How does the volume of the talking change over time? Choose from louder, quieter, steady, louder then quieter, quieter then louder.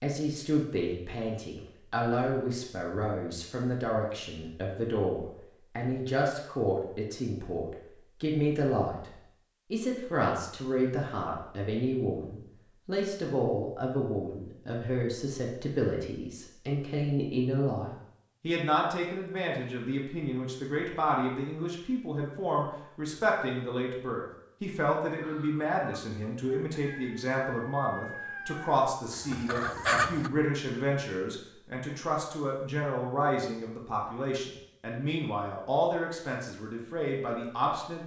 steady.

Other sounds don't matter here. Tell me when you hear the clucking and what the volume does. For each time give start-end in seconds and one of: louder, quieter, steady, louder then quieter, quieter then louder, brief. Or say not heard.
25.1-30.3 louder.